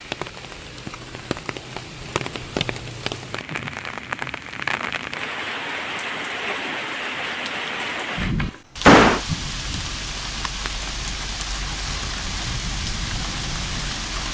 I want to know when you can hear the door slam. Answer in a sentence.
The door slam can be heard from 8.2 to 9.2 s.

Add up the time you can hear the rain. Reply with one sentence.
The rain can be heard for 14 seconds in total.